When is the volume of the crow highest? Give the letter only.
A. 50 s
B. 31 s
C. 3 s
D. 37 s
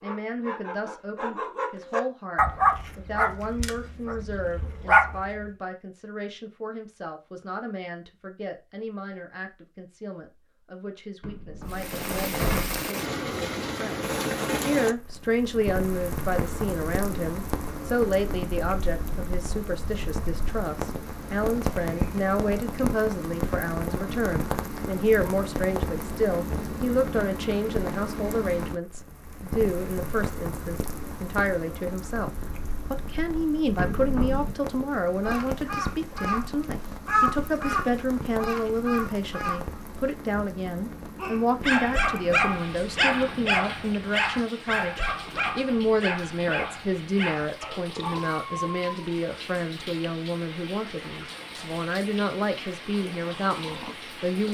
D.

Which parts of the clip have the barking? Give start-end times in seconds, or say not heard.
0.0-5.5, 41.1-49.1.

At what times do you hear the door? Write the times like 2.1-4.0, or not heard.
11.2-12.8, 33.8-34.5.